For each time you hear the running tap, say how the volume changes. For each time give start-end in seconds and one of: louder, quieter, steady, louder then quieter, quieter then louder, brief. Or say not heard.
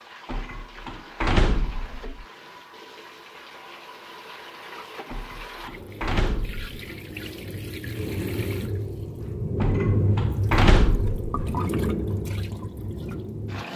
0.0-13.7 louder.